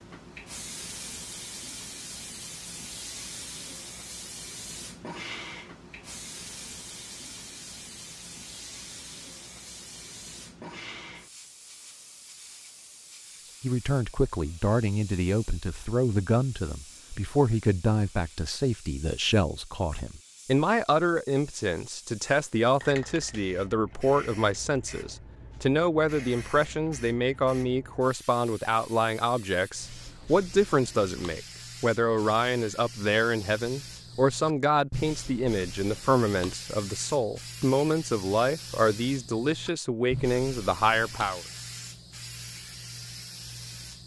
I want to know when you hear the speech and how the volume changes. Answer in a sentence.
The speech can be heard from 13.6 to 41.4 s, at a steady volume.